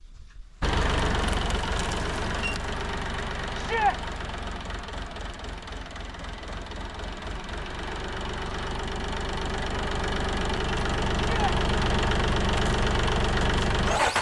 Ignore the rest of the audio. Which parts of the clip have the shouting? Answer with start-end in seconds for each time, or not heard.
3.5-4.0, 11.2-11.6.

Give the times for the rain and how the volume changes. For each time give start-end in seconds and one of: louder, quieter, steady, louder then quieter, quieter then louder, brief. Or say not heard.
not heard.